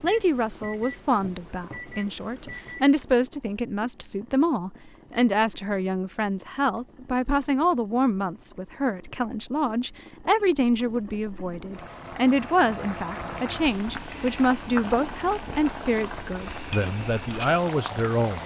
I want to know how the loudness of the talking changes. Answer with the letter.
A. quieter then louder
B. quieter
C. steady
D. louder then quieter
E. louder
C.